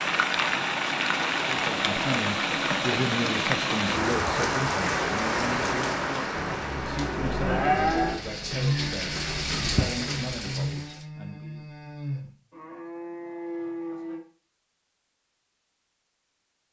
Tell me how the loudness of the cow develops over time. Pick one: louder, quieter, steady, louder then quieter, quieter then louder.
quieter.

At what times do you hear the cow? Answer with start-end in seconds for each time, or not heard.
6.0-14.2.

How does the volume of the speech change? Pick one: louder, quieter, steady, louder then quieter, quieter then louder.
quieter.